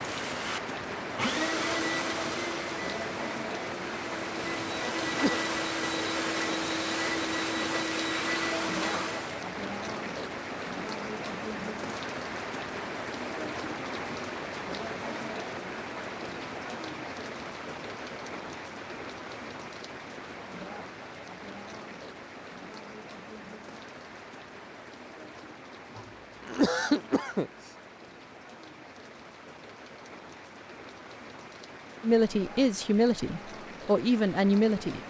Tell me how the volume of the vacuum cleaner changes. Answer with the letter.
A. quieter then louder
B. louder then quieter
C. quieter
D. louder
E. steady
A.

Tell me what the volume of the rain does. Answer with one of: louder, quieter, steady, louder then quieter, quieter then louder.
quieter.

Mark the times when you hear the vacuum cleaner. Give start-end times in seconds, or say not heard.
0.0-9.4.